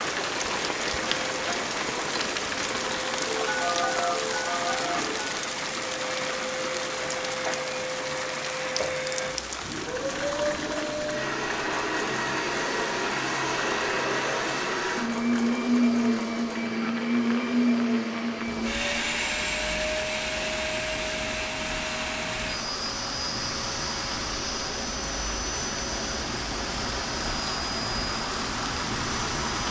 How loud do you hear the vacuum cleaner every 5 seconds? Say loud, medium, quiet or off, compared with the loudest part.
medium, medium, loud, loud, medium, medium.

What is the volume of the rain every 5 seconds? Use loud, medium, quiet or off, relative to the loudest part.
loud, loud, medium, medium, medium, loud.